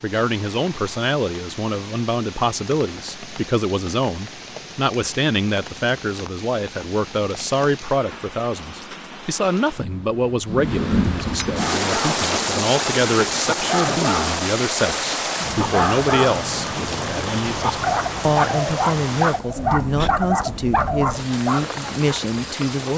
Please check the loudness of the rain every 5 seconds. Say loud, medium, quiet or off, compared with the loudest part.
quiet, quiet, loud, loud, medium.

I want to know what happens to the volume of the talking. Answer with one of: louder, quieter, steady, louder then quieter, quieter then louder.
steady.